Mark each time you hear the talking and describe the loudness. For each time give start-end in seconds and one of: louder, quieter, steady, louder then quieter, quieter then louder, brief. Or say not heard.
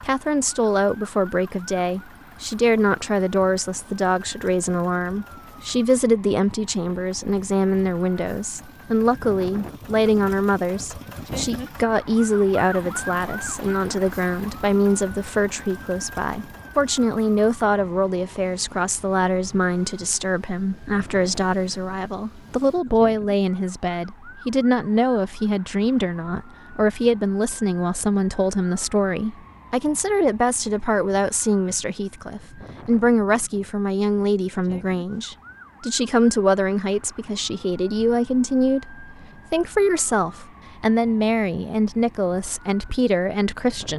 0.0-43.9 steady.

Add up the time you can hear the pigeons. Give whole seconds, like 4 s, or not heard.
not heard.